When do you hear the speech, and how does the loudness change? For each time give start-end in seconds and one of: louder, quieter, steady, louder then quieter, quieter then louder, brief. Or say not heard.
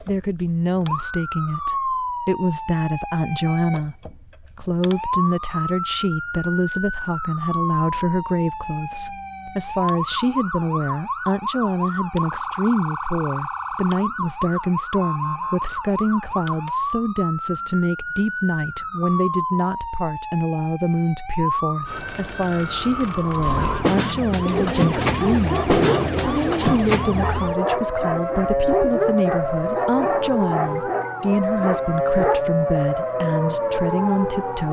0.0-34.6 steady.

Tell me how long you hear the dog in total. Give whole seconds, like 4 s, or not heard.
8 s.